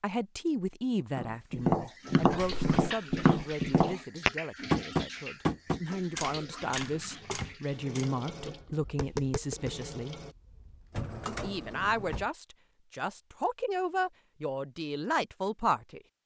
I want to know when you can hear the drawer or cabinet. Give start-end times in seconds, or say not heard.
2.3-2.9, 6.6-7.5, 10.9-12.3.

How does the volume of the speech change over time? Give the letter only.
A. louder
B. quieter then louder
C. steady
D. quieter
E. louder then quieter
B.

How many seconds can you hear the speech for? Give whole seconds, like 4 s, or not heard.
15 s.